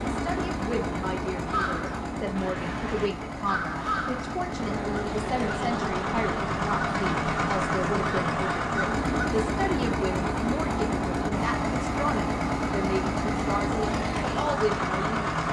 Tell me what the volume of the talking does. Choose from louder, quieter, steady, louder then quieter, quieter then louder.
steady.